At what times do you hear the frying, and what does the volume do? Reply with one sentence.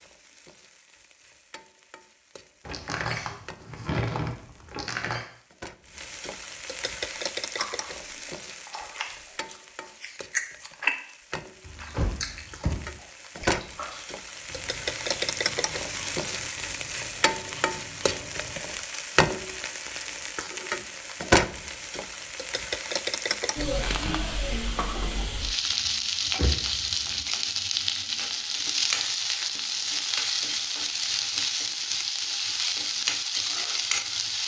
You can hear the frying from 0.0 to 34.4 s, getting louder.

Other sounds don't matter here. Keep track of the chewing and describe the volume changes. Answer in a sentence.
The loudness of the chewing goes up, then down.